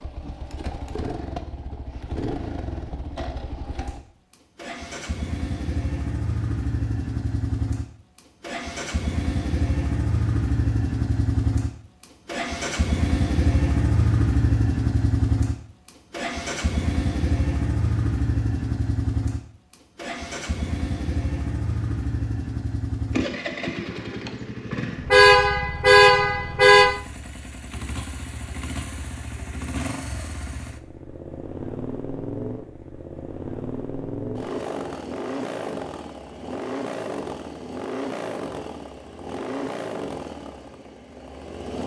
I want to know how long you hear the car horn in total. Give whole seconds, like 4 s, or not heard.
2 s.